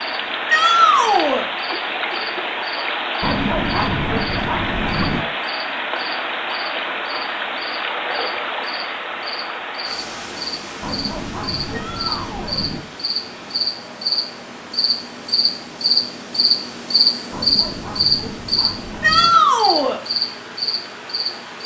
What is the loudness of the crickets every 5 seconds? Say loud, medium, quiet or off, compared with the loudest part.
quiet, quiet, medium, loud, medium.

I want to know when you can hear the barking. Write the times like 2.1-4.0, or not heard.
3.2-5.2, 10.8-12.8, 17.3-19.4.